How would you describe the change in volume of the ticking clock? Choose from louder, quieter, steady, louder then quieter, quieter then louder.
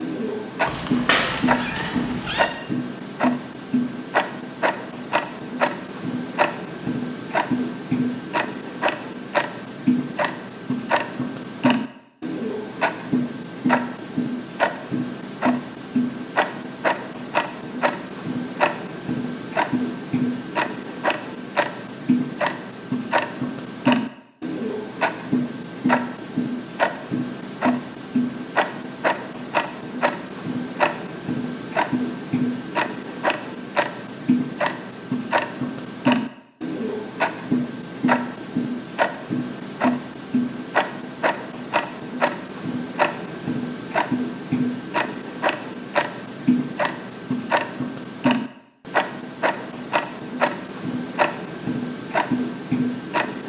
steady.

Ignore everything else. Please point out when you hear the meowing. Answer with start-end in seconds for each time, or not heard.
0.7-2.5.